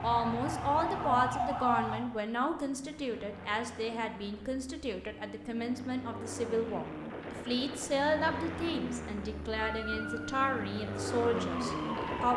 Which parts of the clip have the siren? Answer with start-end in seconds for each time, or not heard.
0.0-2.0, 9.6-12.3.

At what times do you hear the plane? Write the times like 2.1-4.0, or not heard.
0.0-12.3.